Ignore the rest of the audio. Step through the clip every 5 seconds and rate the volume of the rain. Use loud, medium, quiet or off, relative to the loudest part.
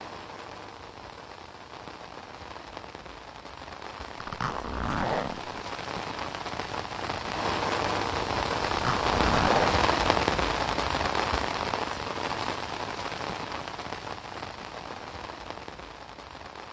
quiet, loud, loud, quiet.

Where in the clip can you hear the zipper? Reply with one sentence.
The zipper can be heard from 4.2 to 5.6 s and from 8.6 to 9.8 s.